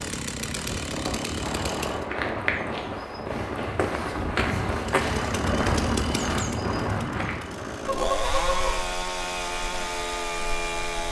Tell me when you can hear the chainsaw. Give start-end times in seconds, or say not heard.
0.0-2.1, 4.8-11.0.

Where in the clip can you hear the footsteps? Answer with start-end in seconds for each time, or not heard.
1.9-7.5.